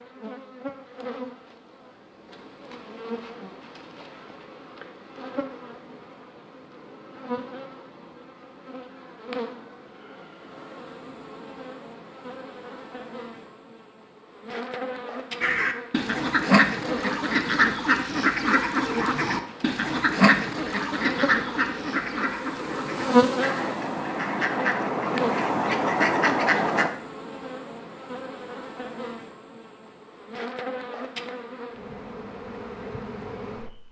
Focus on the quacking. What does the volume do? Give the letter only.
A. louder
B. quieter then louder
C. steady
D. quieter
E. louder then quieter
B.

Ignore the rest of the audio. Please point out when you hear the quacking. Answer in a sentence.
The quacking can be heard from 15.4 to 26.9 s.